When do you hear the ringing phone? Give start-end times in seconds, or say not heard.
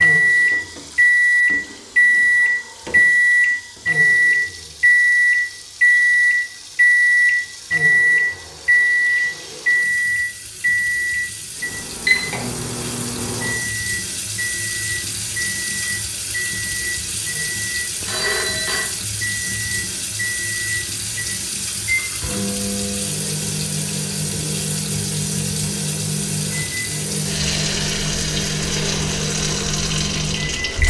18.0-18.9.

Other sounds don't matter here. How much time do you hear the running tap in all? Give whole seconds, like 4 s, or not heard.
31 s.